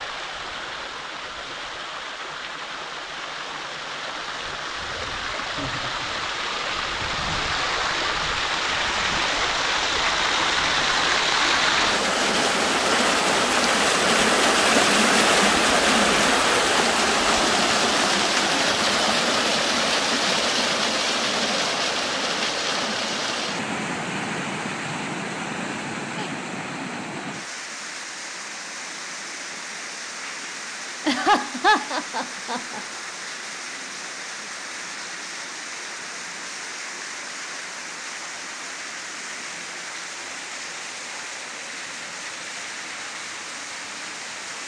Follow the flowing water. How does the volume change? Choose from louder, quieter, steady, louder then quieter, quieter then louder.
louder then quieter.